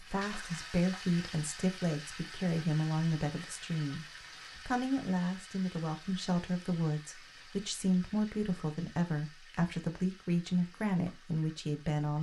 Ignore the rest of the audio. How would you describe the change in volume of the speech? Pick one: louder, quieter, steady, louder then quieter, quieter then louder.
steady.